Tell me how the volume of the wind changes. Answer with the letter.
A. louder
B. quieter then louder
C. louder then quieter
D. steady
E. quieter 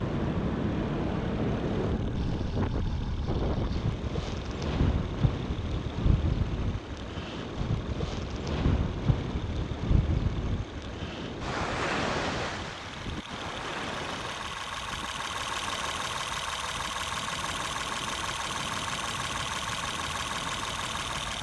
E.